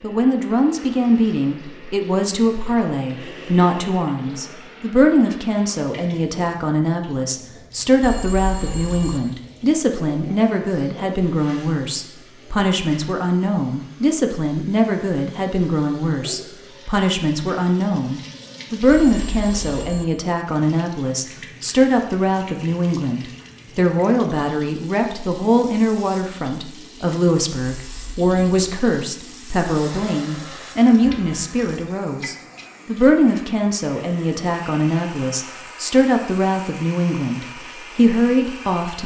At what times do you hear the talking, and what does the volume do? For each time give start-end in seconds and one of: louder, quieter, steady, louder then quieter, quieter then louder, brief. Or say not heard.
0.0-39.0 steady.